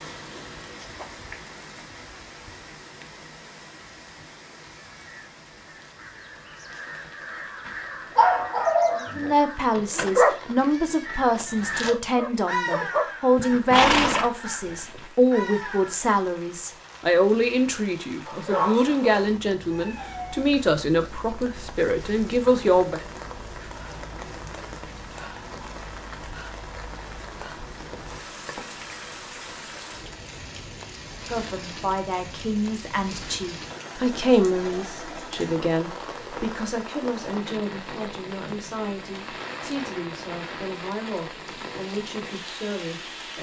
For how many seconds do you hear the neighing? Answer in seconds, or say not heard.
2 s.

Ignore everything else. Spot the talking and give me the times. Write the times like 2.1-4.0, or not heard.
9.2-23.0, 31.2-43.3.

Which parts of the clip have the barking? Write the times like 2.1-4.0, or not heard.
7.7-13.1, 18.2-20.5.